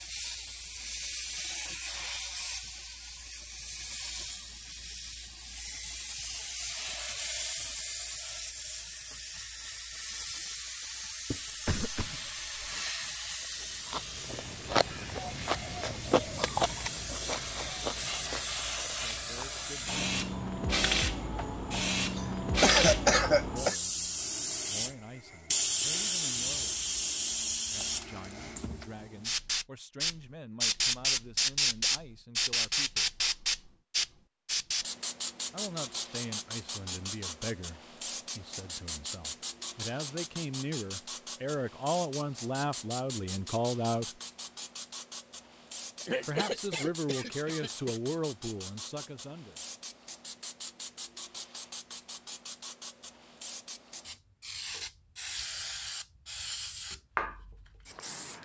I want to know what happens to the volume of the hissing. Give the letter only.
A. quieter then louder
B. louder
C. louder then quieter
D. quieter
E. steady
C.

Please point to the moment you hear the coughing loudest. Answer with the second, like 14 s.
23 s.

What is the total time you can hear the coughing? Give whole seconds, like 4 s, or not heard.
5 s.